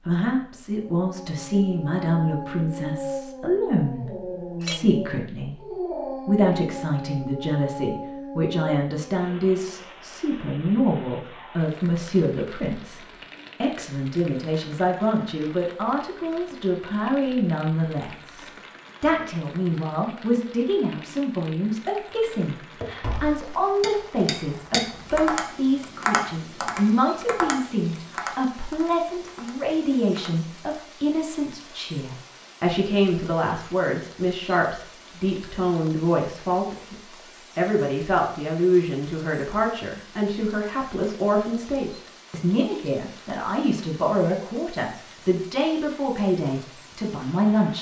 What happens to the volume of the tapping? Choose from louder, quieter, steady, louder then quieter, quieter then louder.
louder then quieter.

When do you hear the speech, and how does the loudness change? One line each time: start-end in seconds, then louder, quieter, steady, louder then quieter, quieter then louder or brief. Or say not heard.
0.1-47.7 steady.